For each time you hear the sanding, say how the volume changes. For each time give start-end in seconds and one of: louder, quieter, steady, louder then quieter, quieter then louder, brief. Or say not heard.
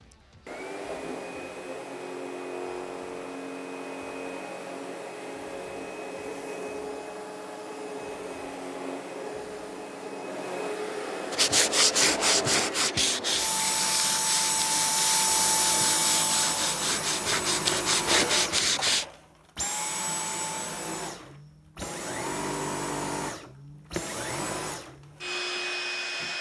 11.3-19.1 quieter then louder.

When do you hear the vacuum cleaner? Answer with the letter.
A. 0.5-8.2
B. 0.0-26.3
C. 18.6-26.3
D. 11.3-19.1
B.